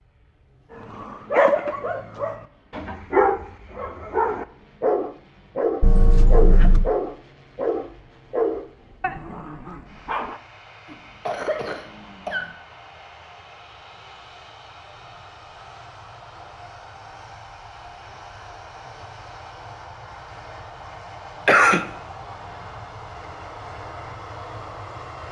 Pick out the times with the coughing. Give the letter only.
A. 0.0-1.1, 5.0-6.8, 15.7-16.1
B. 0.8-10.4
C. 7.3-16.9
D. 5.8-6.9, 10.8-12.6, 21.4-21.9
D.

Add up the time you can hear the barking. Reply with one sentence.
You can hear the barking for 10 seconds altogether.